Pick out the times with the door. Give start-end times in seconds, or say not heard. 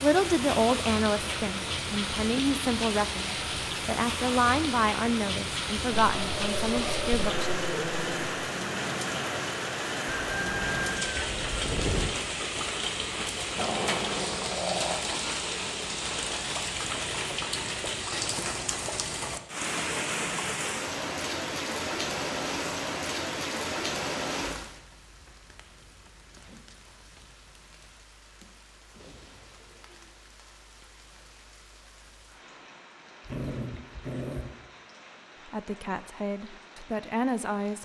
not heard.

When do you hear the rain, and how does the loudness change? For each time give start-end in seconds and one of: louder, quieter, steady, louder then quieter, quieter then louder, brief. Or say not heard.
0.0-37.8 quieter.